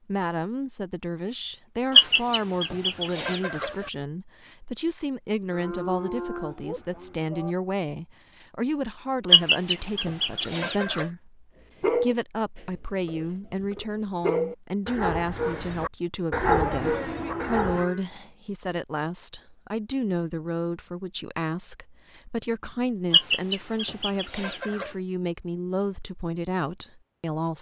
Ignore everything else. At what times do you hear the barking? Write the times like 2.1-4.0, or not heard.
11.8-17.9.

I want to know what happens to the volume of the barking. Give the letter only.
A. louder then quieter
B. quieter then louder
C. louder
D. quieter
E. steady
C.